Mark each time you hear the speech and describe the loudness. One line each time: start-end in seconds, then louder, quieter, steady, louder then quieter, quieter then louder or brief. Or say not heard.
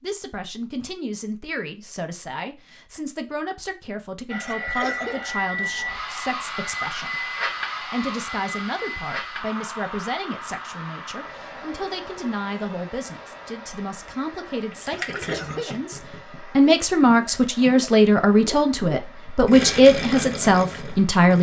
0.0-21.3 louder.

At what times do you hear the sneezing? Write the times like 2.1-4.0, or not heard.
4.5-5.2, 15.1-15.8.